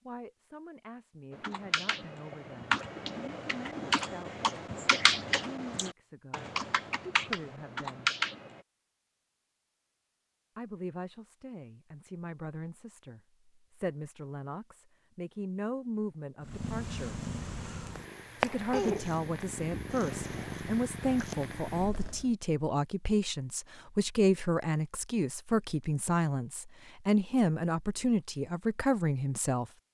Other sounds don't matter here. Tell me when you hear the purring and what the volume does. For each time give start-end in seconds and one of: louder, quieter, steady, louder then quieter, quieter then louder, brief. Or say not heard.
16.4-22.4 louder then quieter.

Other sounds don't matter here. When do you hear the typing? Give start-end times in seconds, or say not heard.
1.4-8.6.